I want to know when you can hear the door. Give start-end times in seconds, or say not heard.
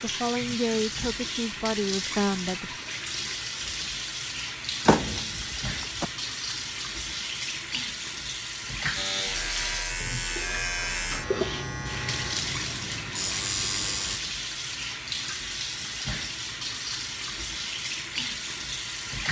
4.8-6.0.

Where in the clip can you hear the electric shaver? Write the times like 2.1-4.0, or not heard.
8.9-14.2.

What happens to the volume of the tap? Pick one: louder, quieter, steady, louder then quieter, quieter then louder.
steady.